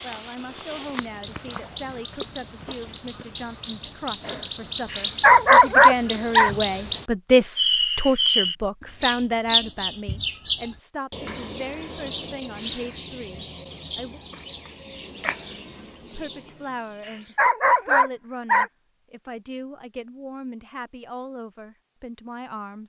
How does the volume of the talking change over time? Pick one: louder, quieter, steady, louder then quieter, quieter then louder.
louder then quieter.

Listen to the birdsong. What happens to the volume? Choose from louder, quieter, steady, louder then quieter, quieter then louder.
louder then quieter.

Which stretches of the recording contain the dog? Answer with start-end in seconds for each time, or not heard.
4.9-6.5, 17.1-18.7.